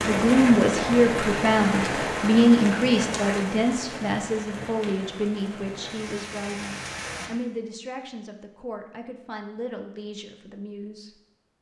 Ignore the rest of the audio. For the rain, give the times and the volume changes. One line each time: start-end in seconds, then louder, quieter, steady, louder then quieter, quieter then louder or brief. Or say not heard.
0.0-7.3 quieter.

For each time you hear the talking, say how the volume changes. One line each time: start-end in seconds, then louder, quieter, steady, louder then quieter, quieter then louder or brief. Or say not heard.
0.0-11.2 quieter.